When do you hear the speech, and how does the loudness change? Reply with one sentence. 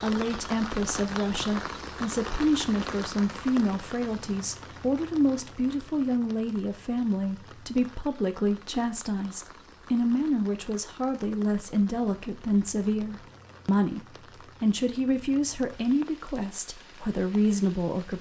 The speech can be heard from 0.0 to 18.1 s, at a steady volume.